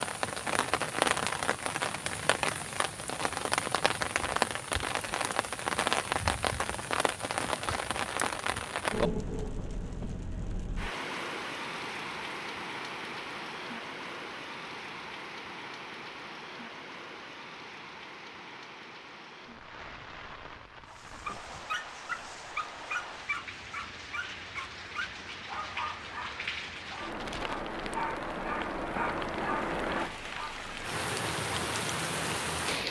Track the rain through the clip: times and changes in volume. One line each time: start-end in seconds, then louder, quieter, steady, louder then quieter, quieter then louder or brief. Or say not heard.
0.0-32.8 quieter then louder.